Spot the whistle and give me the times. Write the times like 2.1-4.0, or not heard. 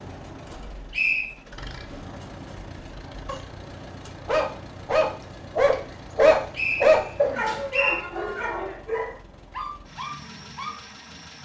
0.5-1.2, 6.5-8.0.